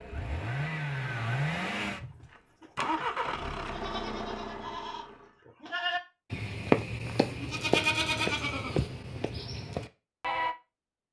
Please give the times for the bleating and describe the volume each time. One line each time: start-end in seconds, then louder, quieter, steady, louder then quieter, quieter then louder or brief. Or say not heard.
1.8-2.2 brief
3.0-10.6 louder then quieter.